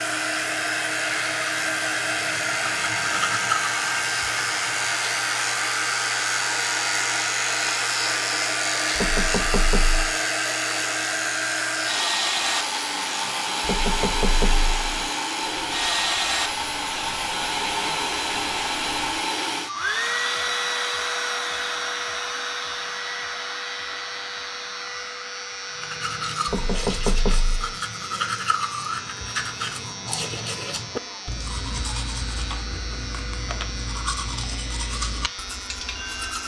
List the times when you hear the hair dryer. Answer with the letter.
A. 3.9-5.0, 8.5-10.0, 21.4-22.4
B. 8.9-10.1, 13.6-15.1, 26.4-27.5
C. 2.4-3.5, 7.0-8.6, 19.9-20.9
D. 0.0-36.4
D.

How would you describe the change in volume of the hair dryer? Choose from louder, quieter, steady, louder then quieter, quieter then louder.
quieter.